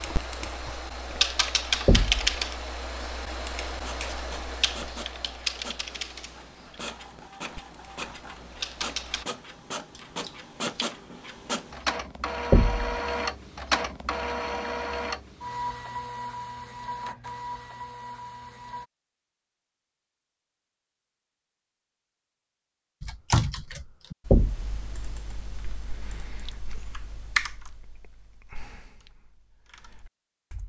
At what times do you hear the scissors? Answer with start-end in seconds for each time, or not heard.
9.9-10.9.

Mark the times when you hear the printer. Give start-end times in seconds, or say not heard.
3.6-18.9.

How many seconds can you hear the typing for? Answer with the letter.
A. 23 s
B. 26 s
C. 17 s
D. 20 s
C.